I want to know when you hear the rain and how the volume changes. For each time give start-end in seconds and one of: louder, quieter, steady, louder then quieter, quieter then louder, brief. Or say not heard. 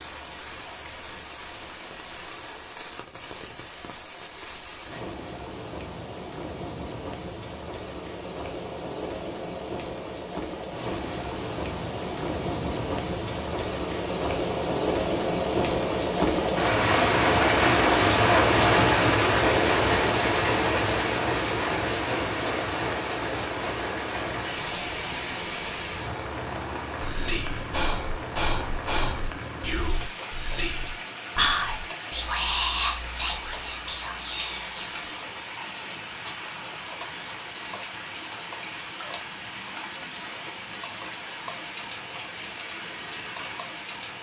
0.0-44.1 louder then quieter.